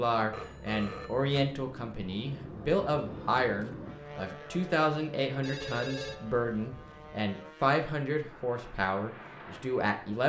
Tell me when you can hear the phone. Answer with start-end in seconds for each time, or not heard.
0.3-1.4, 5.4-7.2.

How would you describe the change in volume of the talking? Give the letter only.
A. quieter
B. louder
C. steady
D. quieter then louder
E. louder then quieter
C.